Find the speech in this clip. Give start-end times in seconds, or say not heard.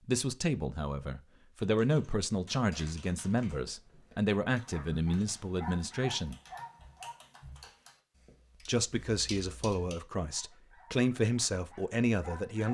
0.1-6.3, 8.7-12.6.